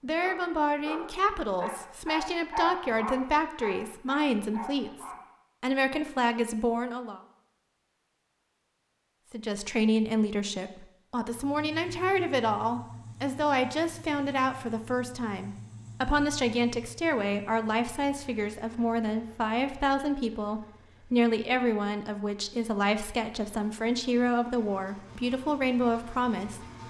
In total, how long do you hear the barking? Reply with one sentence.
The barking can be heard for 5 seconds in total.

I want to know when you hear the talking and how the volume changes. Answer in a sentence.
The talking can be heard from 0.0 to 7.2 s, at a steady volume; and from 9.3 to 26.6 s, at a steady volume.